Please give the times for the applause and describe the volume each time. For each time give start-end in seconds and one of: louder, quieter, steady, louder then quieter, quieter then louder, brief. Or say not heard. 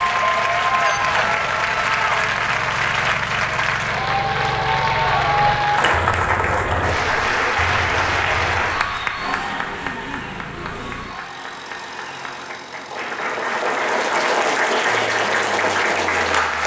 0.0-16.6 quieter then louder.